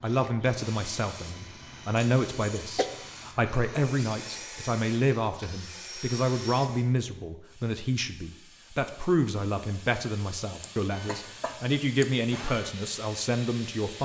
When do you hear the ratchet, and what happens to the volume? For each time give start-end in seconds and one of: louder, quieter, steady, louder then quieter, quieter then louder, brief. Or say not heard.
not heard.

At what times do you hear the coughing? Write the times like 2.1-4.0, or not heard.
1.9-2.9, 10.6-12.1.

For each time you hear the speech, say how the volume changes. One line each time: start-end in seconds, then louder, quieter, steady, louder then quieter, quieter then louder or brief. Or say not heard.
0.0-13.9 steady.